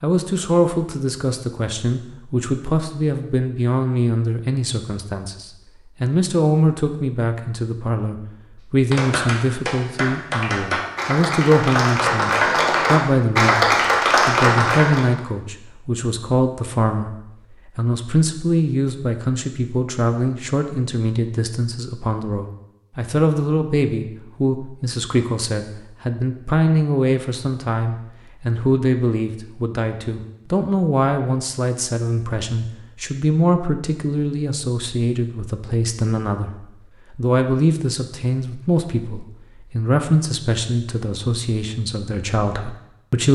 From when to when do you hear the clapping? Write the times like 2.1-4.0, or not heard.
8.9-15.1.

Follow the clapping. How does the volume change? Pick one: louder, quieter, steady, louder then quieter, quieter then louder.
louder.